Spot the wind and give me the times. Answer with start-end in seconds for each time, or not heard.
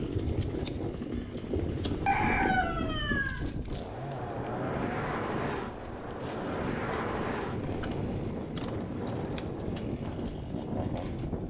0.0-11.4.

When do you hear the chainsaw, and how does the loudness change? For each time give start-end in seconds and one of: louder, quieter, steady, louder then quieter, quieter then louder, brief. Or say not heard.
0.0-11.4 steady.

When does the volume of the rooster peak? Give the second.
2 s.